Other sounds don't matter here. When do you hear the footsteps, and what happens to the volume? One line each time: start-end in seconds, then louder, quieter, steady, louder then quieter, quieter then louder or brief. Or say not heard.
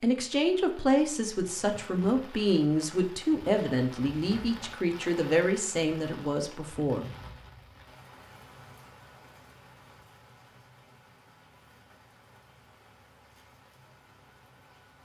not heard.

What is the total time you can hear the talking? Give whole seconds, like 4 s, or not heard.
7 s.